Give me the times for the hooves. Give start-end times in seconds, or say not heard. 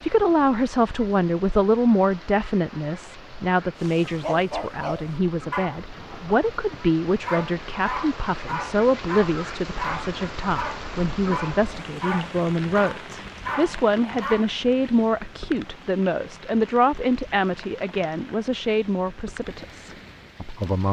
not heard.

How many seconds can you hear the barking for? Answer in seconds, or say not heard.
11 s.